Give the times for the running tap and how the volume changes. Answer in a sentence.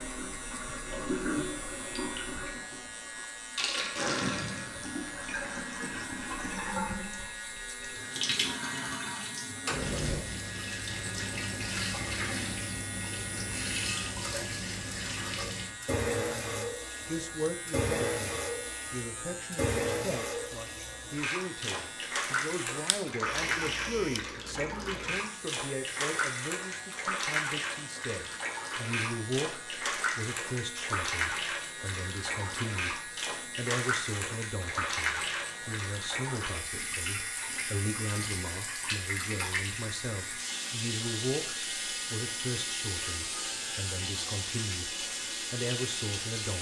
The running tap can be heard from 0.0 to 46.5 s, at a steady volume.